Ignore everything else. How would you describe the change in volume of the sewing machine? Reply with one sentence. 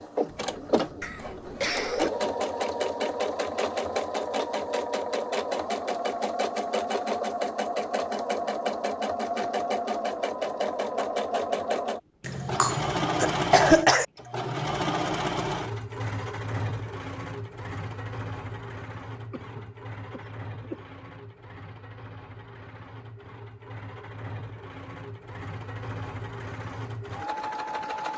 The volume of the sewing machine goes down.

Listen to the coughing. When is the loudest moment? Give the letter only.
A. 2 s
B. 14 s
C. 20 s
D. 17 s
B.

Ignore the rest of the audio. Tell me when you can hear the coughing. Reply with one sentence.
The coughing can be heard from 1.0 to 2.1 s, from 12.2 to 14.1 s and from 19.3 to 20.8 s.